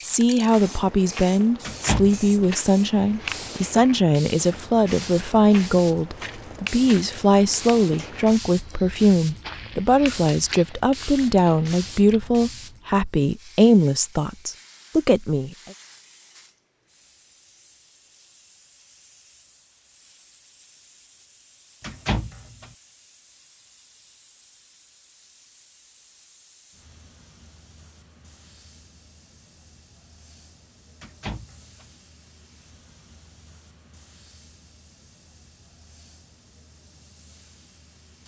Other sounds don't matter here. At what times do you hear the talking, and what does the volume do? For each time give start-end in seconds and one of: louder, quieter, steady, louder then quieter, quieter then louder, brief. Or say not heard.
0.0-15.6 steady.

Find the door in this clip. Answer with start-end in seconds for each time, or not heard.
1.6-2.5, 21.8-22.7, 31.0-31.9.